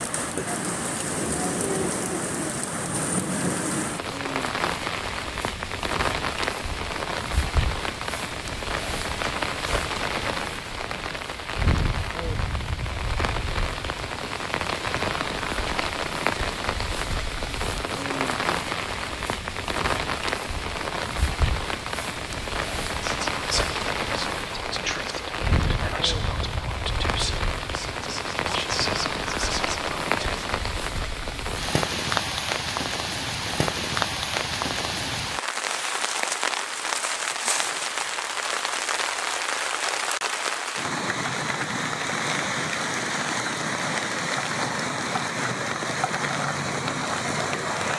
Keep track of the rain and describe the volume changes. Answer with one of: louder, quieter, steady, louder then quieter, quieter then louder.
steady.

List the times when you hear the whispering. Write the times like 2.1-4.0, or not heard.
23.0-30.4.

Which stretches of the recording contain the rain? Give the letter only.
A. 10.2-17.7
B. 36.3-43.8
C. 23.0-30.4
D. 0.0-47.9
D.